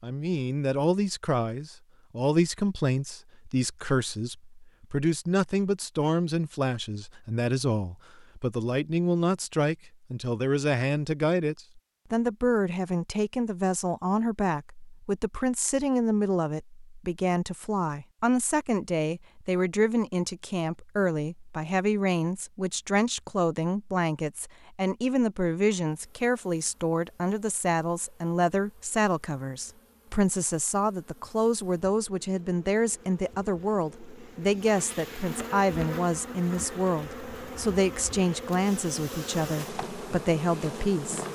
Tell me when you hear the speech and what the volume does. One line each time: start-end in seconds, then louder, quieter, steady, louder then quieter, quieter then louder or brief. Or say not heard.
0.0-41.2 steady.